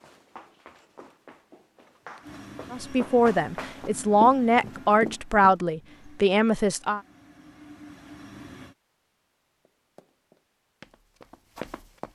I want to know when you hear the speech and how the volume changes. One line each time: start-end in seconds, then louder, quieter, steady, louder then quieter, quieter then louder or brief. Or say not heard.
2.7-7.0 steady.